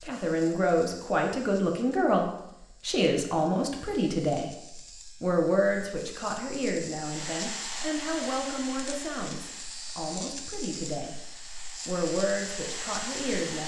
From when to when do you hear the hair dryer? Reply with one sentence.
You can hear the hair dryer from 7.0 to 13.6 s.